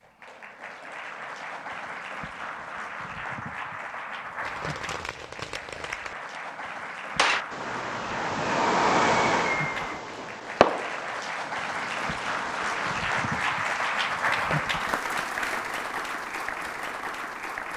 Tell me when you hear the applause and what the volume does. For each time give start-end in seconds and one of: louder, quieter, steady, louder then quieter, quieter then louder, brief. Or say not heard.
0.0-17.7 louder.